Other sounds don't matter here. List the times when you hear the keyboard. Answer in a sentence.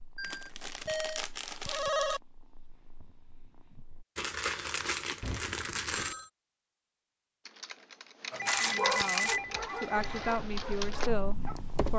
You can hear the keyboard from 7.5 to 11.9 s.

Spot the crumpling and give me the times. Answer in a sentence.
You can hear the crumpling from 0.2 to 2.2 s, from 4.2 to 6.2 s and from 8.4 to 9.4 s.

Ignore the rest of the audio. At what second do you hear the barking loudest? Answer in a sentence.
The volume of the barking peaks at 9 seconds.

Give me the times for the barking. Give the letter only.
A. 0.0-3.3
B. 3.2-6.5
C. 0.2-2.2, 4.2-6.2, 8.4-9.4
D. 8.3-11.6
D.